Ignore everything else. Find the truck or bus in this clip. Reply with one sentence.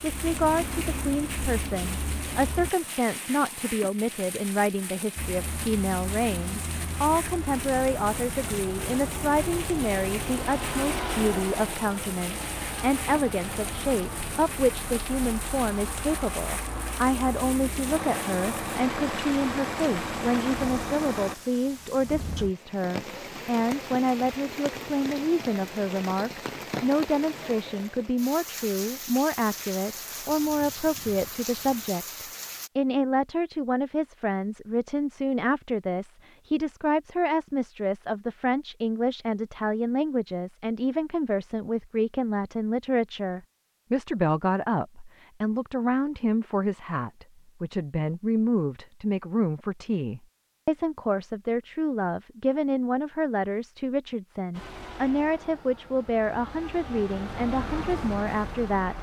You can hear the truck or bus from 0.0 to 2.7 s, from 5.2 to 21.4 s and from 54.5 to 58.9 s.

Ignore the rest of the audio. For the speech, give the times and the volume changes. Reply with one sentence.
You can hear the speech from 0.0 to 58.9 s, at a steady volume.